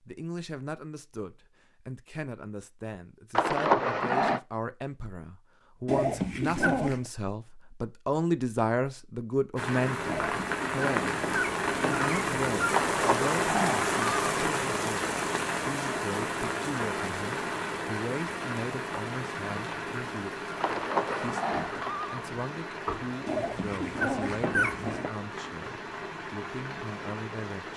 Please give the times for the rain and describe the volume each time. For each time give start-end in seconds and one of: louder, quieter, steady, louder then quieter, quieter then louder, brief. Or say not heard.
9.6-27.7 quieter.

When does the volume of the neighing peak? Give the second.
4 s.